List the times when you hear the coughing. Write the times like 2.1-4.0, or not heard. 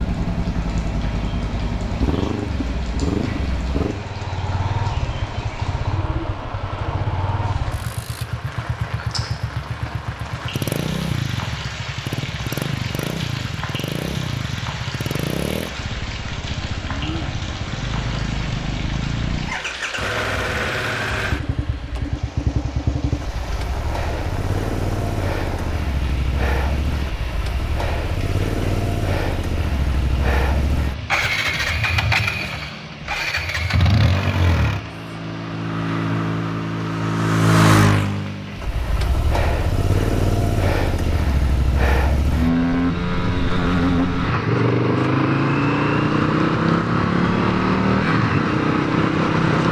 not heard.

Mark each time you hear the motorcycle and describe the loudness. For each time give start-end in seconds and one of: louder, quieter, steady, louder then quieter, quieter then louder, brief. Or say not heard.
0.0-49.6 louder.